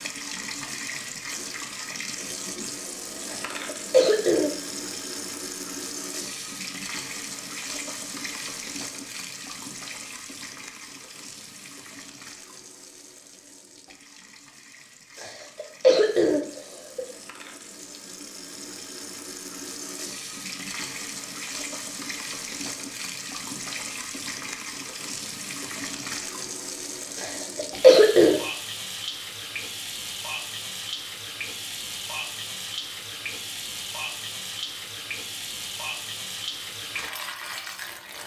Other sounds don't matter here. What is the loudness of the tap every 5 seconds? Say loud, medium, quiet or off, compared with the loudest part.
loud, loud, medium, medium, loud, loud, loud, loud.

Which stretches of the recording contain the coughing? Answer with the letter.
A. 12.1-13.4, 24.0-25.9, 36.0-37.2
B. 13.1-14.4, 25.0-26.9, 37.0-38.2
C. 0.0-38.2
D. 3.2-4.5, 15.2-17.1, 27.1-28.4
D.